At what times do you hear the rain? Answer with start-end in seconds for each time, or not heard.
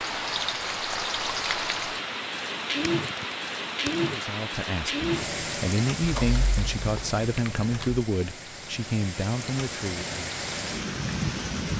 0.0-11.7.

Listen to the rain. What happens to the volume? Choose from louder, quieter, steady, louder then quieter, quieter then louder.
quieter then louder.